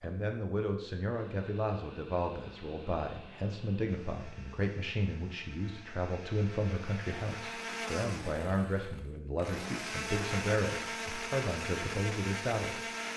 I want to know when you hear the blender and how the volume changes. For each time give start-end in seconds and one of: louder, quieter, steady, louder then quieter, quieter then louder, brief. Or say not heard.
0.0-13.1 louder.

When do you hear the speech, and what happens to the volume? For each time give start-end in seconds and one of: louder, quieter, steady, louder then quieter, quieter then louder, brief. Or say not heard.
0.0-12.8 steady.